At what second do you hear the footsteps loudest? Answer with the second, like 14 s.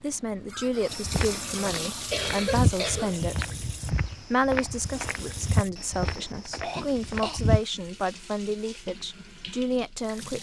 3 s.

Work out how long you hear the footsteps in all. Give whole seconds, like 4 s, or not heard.
7 s.